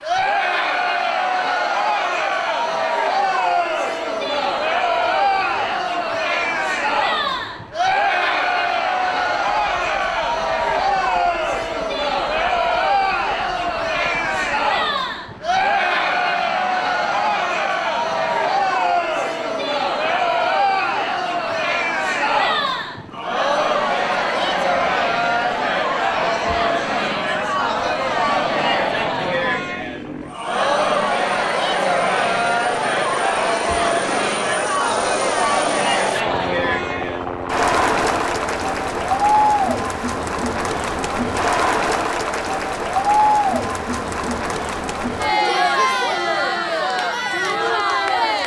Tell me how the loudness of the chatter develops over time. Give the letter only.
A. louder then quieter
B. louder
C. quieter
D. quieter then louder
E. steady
E.